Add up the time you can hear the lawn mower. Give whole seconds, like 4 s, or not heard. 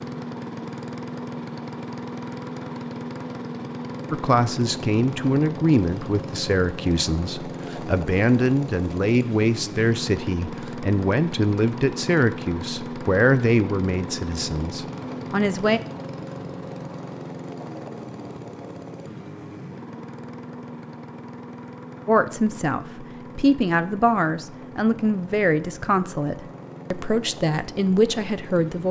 29 s.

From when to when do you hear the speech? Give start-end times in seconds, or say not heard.
4.1-15.8, 22.1-28.8.